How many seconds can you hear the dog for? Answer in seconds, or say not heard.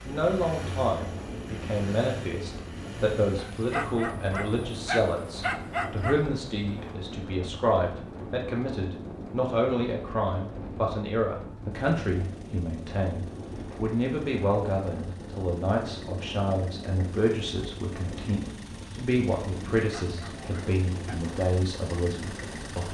4 s.